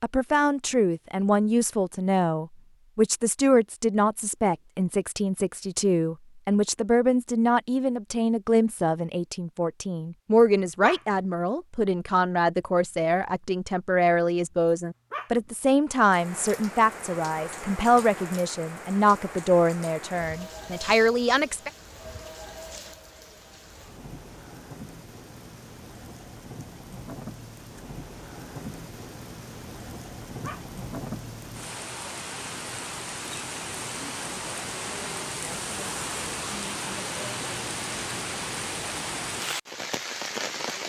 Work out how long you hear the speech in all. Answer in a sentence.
You can hear the speech for 22 seconds altogether.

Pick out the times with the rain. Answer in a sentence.
You can hear the rain from 16.0 to 40.8 s.